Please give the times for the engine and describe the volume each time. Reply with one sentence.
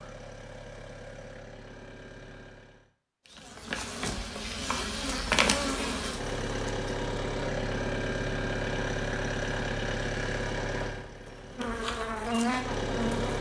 The engine can be heard briefly from 0.0 to 2.9 s; and from 6.0 to 13.3 s, getting quieter.